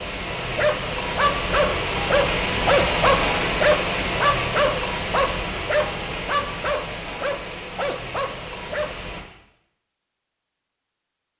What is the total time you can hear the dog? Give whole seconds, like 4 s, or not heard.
9 s.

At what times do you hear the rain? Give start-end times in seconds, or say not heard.
0.0-9.2.